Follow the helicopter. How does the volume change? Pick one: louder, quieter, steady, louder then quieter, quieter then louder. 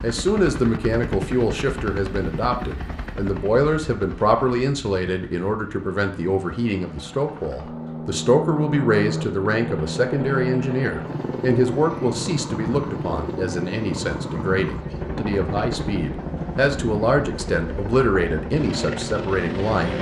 quieter then louder.